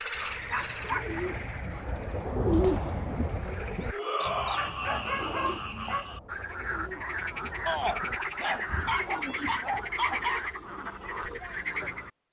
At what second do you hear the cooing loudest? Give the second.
3 s.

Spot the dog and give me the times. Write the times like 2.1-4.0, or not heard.
0.1-1.2, 4.5-6.0, 8.3-10.5.